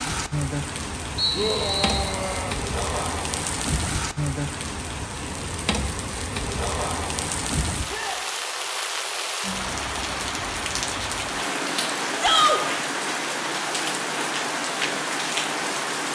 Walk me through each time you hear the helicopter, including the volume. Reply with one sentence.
You can't hear the helicopter here.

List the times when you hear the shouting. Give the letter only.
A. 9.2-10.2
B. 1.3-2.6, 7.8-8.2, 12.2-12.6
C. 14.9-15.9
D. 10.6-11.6
B.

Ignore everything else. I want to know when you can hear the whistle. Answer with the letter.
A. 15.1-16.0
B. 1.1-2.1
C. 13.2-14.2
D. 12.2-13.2
B.